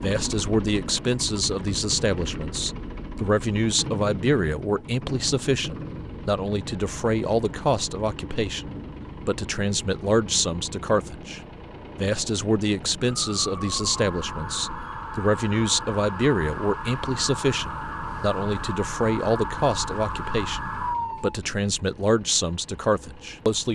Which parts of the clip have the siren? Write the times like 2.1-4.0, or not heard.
13.2-21.4.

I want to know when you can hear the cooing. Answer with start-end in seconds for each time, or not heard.
not heard.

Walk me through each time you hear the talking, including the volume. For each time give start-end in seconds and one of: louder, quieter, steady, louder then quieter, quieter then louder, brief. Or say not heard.
0.0-23.7 steady.